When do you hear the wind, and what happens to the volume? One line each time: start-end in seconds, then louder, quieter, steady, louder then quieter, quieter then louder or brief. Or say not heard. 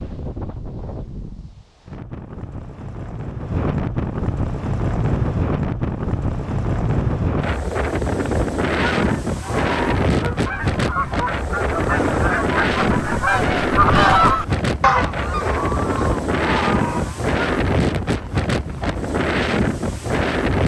0.0-20.6 louder.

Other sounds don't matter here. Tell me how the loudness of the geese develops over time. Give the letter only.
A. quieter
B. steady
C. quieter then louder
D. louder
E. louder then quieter
E.